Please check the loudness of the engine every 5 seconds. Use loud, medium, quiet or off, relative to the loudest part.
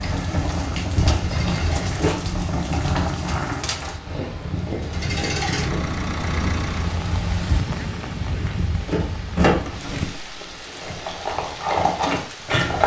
medium, loud, off.